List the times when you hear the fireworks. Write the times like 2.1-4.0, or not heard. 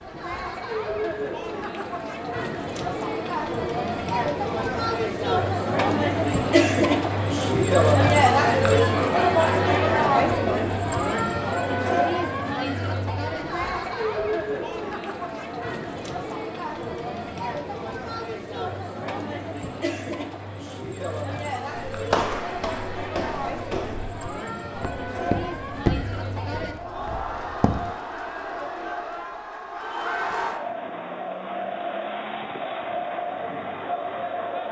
not heard.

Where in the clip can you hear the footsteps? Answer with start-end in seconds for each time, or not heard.
21.9-27.9.